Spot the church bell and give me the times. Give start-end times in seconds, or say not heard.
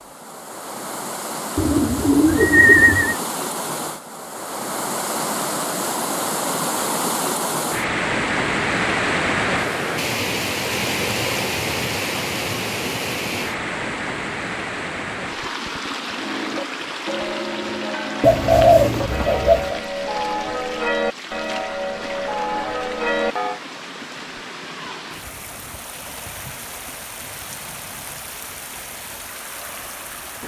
16.1-23.6.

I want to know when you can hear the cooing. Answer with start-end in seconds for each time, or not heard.
1.6-3.1, 18.2-19.8.